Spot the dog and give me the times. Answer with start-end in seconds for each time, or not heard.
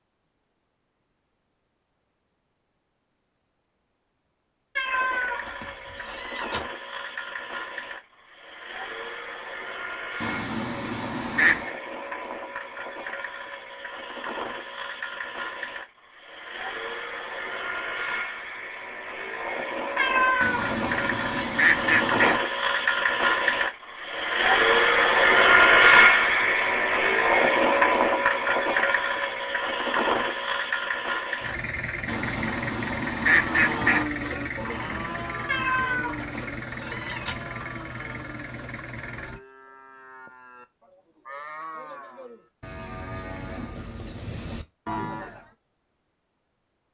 not heard.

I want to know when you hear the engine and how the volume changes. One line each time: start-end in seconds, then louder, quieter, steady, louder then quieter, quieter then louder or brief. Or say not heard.
4.8-39.4 louder then quieter.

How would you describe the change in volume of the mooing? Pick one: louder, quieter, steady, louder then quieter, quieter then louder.
quieter then louder.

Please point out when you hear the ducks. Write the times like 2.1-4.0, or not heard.
10.2-11.8, 20.4-22.4, 32.0-34.0.